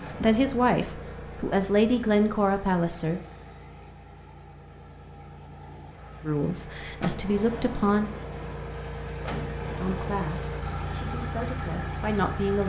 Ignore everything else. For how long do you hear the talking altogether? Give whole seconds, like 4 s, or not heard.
8 s.